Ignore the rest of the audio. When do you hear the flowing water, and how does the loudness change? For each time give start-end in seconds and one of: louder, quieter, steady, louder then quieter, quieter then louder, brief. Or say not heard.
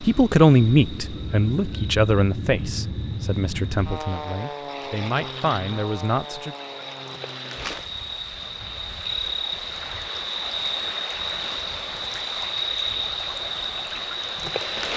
0.0-14.9 louder.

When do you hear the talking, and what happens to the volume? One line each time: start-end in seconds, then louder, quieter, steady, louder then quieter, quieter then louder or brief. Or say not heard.
0.0-6.5 quieter then louder.